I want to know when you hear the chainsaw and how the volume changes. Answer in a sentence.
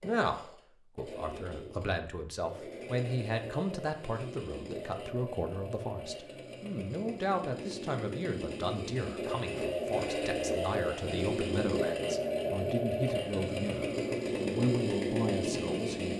You can hear the chainsaw from 0.0 to 16.1 s, getting louder.